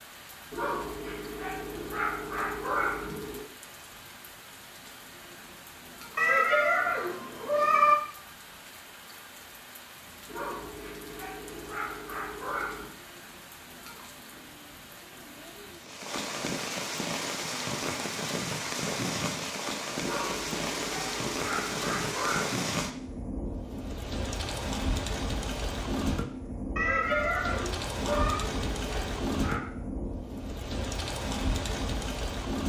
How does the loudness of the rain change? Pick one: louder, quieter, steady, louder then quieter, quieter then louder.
louder.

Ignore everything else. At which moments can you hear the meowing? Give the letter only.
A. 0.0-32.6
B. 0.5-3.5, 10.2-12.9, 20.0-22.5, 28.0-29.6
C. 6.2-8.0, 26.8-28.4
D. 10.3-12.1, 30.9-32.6
C.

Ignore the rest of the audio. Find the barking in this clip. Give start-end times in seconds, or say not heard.
0.5-3.5, 10.2-12.9, 20.0-22.5, 28.0-29.6.